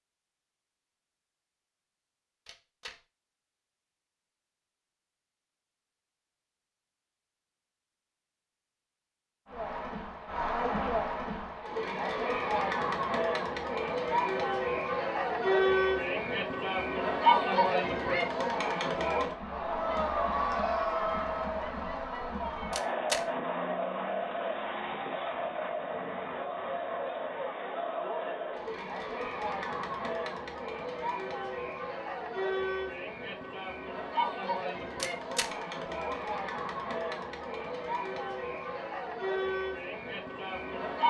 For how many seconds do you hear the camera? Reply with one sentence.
The camera can be heard for 2 seconds in total.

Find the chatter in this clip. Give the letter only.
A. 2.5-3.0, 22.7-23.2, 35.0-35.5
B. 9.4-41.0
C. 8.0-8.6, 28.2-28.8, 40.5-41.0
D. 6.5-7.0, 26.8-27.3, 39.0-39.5
B.